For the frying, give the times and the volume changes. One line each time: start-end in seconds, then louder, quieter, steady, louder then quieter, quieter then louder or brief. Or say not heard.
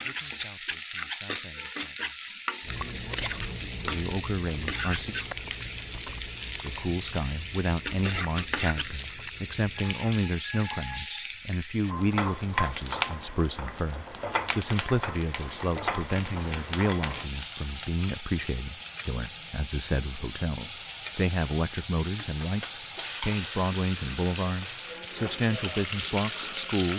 0.0-26.9 steady.